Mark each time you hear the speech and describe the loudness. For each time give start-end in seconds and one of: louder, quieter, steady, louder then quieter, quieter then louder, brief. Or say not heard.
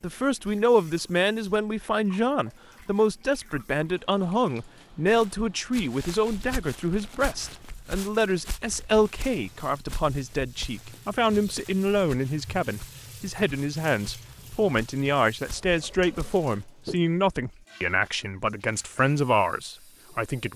0.0-20.5 steady.